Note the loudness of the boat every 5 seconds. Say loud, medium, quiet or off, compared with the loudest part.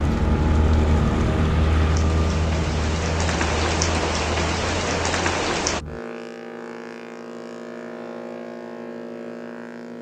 loud, medium.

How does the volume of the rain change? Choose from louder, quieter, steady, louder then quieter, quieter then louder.
louder.